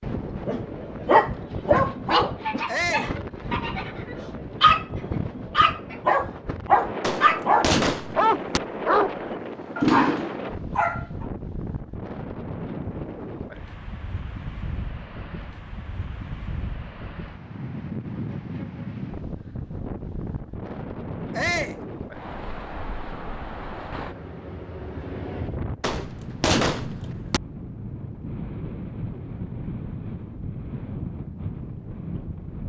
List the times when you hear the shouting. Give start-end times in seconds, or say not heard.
2.6-3.1, 21.4-21.8.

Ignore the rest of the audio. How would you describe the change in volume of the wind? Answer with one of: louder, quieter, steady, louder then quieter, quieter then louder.
steady.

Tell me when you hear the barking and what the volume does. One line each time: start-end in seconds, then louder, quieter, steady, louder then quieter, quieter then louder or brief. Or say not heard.
0.5-11.2 steady.